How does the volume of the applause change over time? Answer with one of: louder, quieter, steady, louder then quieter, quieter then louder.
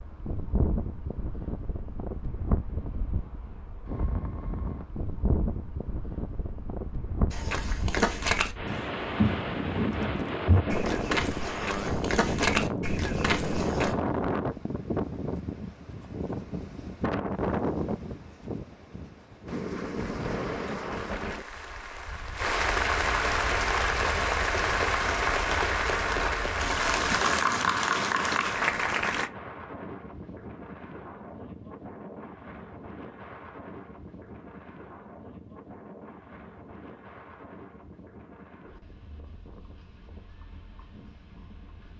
louder.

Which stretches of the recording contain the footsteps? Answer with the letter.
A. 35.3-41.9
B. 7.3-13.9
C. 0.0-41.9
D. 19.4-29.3
B.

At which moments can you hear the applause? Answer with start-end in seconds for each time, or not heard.
19.4-29.3.